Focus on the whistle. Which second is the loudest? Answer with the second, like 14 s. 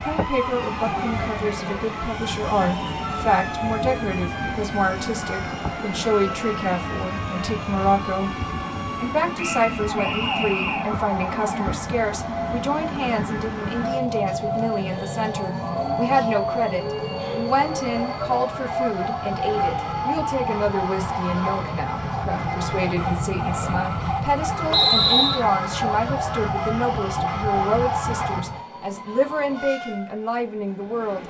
25 s.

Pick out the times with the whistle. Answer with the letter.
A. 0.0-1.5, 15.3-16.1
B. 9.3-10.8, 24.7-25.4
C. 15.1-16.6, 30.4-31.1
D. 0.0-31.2
B.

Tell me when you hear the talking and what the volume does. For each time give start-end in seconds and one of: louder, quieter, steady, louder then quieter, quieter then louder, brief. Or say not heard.
0.0-31.2 steady.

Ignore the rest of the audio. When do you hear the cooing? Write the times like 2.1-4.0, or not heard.
not heard.